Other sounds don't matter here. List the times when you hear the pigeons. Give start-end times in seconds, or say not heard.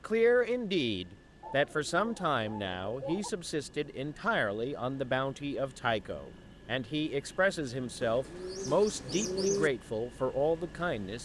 1.4-3.4, 8.0-9.7.